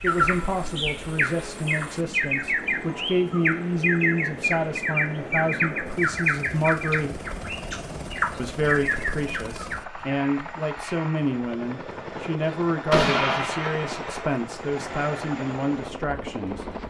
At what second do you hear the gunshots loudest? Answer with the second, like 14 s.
13 s.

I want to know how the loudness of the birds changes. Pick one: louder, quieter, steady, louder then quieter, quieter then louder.
steady.